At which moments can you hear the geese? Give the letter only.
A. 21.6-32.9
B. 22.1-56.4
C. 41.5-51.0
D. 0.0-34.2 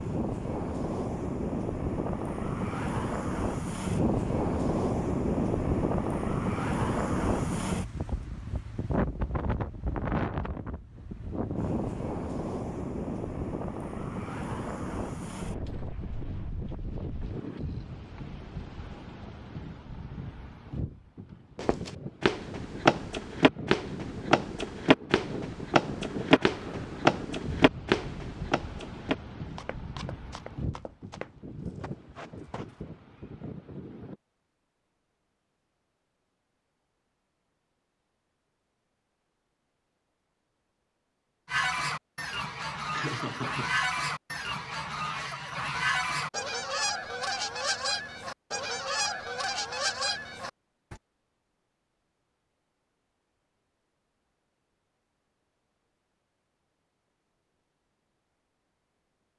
C.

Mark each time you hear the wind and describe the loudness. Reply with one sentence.
You can hear the wind from 0.0 to 34.2 s, getting quieter.